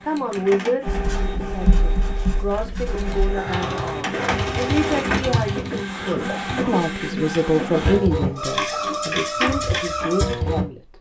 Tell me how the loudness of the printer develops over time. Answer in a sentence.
The loudness of the printer goes up.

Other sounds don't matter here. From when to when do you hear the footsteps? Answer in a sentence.
The footsteps can't be heard in this clip.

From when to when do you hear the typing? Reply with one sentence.
You can hear the typing from 3.5 to 6.8 s.